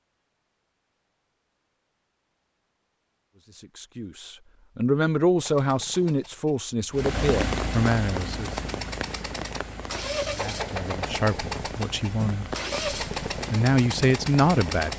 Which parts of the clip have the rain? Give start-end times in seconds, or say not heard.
6.9-14.9.